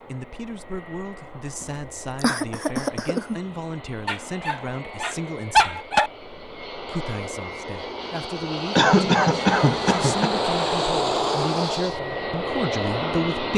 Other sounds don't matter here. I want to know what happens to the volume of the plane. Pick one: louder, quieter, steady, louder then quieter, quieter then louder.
louder.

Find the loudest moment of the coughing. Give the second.
9 s.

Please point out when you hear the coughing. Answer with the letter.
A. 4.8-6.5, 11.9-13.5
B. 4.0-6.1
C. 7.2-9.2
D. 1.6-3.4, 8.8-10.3
D.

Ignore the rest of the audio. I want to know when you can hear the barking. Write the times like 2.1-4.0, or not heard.
4.0-6.1.